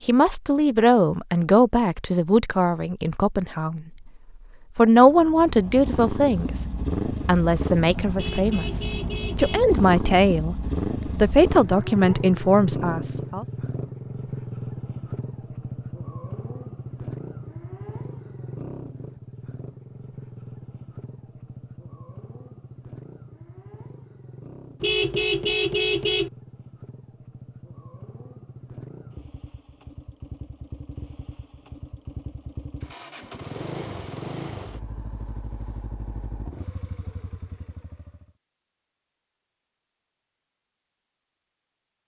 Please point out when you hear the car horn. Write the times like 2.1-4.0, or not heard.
8.2-9.7, 24.8-26.3.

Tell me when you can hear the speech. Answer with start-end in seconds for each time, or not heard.
0.1-3.9, 4.8-6.7, 7.2-13.4.